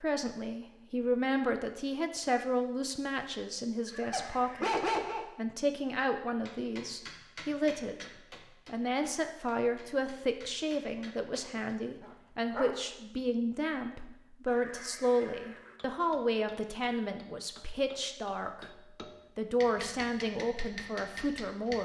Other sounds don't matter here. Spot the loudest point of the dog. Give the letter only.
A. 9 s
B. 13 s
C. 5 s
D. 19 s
C.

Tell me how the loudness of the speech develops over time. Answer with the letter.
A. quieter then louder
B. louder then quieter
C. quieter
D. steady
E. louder
D.